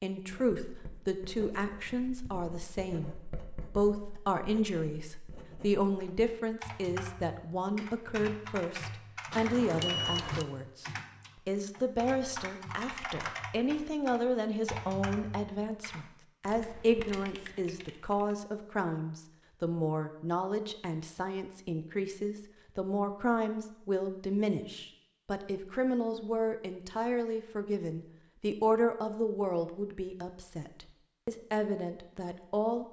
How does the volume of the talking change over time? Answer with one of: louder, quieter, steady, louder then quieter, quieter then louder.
steady.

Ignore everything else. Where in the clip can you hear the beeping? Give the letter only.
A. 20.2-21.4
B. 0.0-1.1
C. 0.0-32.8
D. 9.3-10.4
D.